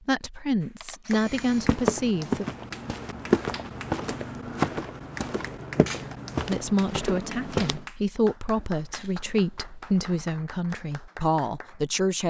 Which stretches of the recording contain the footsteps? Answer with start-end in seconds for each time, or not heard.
1.1-7.8.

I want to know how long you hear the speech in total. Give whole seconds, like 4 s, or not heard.
8 s.